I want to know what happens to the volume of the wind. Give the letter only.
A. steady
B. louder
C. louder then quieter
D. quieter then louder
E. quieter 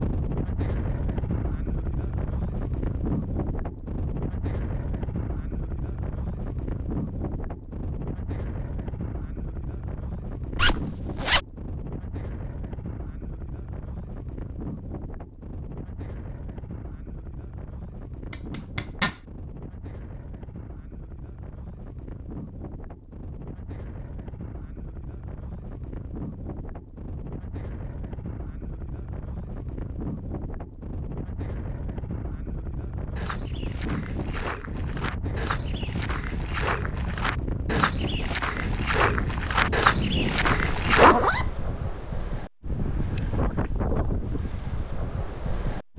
D.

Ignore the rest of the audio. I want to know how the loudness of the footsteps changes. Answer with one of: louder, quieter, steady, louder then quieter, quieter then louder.
louder.